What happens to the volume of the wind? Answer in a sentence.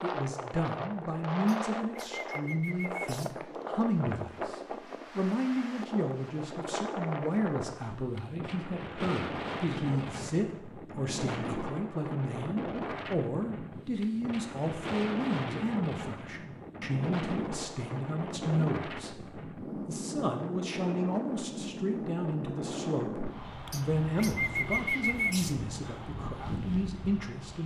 The volume of the wind stays about the same.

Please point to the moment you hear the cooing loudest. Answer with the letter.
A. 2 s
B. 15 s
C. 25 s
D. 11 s
C.